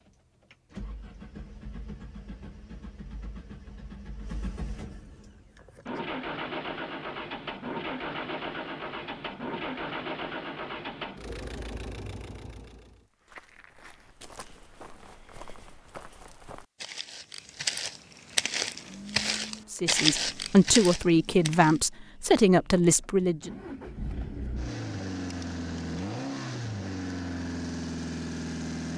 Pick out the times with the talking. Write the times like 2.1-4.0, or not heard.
19.7-23.5.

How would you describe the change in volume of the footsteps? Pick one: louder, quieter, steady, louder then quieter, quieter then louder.
louder.